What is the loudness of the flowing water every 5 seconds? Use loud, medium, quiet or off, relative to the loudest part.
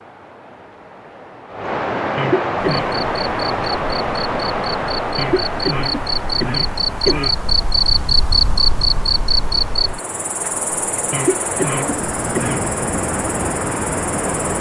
loud, medium, loud.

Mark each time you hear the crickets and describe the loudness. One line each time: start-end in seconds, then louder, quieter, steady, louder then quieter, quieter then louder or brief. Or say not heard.
2.8-14.5 louder then quieter.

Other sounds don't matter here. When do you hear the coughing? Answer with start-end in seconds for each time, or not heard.
2.1-2.9, 5.2-7.3, 11.1-12.7.